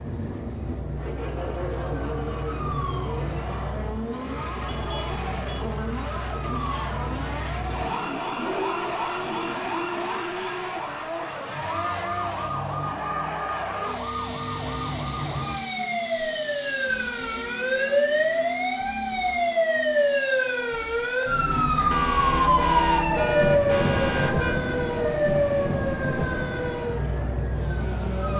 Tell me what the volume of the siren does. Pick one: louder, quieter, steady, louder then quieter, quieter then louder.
louder.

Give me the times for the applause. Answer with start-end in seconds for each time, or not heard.
not heard.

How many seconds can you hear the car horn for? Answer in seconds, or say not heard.
5 s.